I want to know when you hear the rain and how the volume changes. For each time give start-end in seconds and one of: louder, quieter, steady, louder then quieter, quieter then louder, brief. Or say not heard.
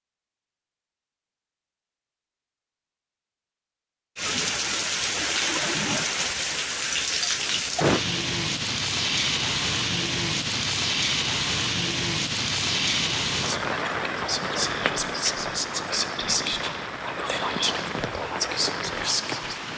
4.2-19.7 quieter.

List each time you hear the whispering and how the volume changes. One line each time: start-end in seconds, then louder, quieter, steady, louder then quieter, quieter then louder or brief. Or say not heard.
13.3-19.6 steady.